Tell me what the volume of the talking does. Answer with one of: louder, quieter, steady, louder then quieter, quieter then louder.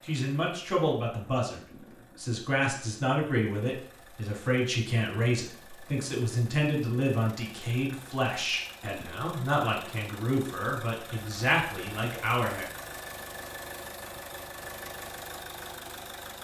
steady.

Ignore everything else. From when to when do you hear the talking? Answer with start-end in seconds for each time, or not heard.
0.0-12.7.